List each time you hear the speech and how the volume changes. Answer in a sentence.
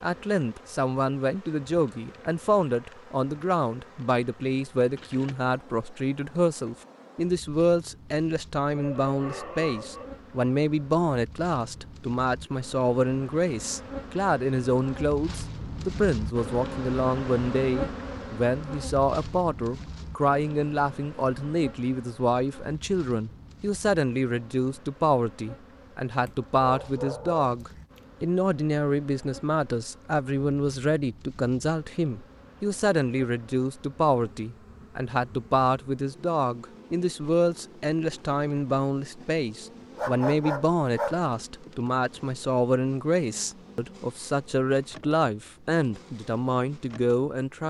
You can hear the speech from 0.0 to 47.6 s, at a steady volume.